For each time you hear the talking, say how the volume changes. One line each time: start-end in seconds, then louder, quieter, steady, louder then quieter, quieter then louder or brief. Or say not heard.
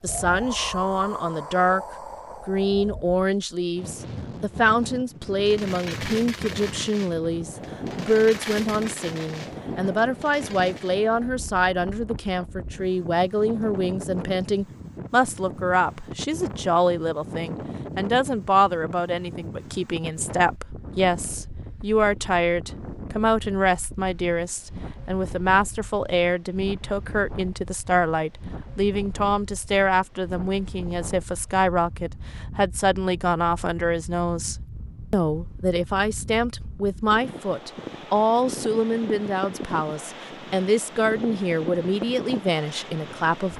0.0-1.8 brief
2.5-43.5 steady.